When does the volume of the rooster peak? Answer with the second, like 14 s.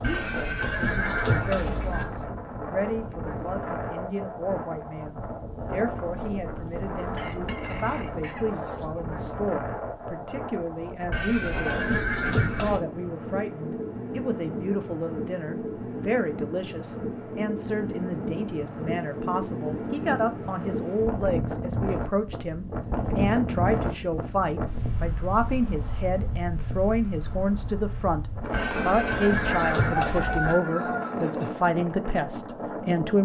30 s.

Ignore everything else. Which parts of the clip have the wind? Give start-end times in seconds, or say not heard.
0.0-33.1.